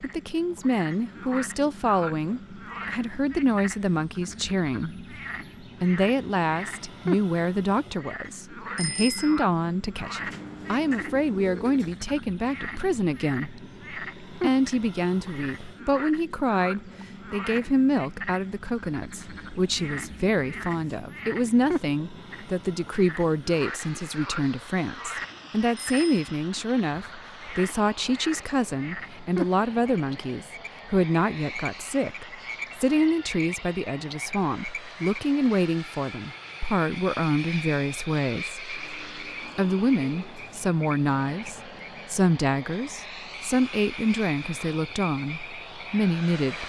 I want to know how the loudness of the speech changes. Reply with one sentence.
The loudness of the speech stays about the same.